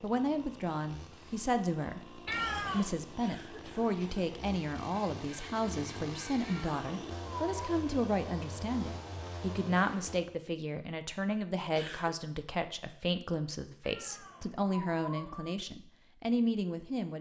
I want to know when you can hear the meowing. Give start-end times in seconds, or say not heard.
2.2-3.0, 6.4-7.8, 13.8-15.6.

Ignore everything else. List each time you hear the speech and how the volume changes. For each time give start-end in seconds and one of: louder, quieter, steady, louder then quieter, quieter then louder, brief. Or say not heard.
0.0-17.1 steady.